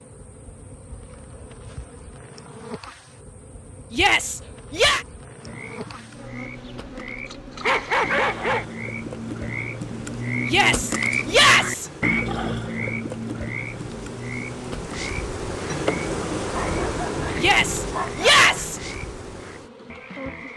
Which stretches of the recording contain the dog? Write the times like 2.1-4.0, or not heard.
7.6-8.7, 16.5-18.4.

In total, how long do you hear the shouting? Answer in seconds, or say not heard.
4 s.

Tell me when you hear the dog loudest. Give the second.
8 s.